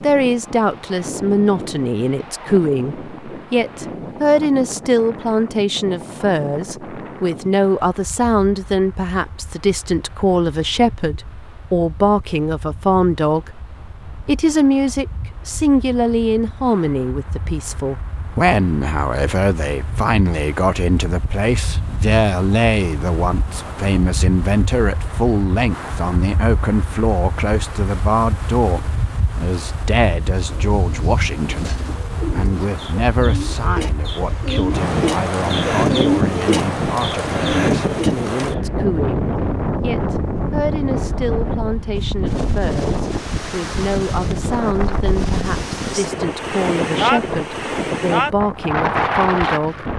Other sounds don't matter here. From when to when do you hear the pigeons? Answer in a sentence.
You can hear the pigeons from 30.4 to 38.6 s.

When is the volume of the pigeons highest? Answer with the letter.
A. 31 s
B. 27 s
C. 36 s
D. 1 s
C.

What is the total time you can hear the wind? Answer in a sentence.
You can hear the wind for 50 seconds altogether.